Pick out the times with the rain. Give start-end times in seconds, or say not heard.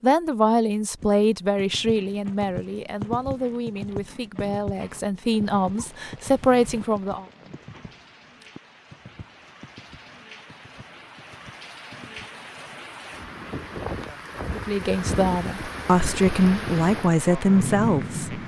5.1-18.4.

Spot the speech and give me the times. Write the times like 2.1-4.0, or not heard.
0.0-7.2, 14.6-18.4.